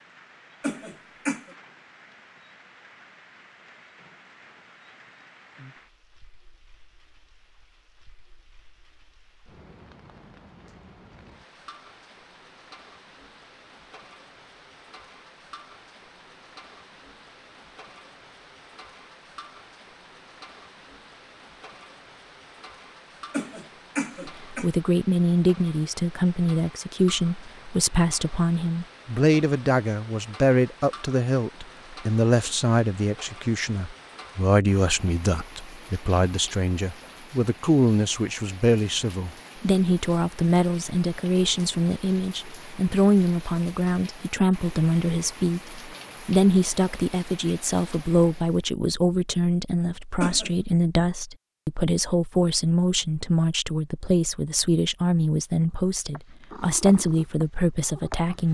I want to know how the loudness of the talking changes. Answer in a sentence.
The volume of the talking stays about the same.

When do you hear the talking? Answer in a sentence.
The talking can be heard from 24.5 to 58.4 s.